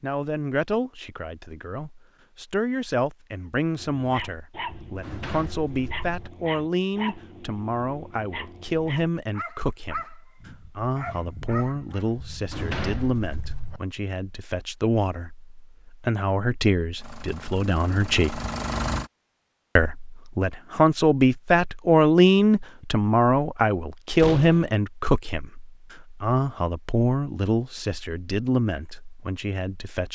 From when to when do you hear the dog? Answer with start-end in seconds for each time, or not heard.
3.8-12.2.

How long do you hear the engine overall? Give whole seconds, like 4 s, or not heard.
2 s.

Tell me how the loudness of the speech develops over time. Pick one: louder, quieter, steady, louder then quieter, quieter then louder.
louder then quieter.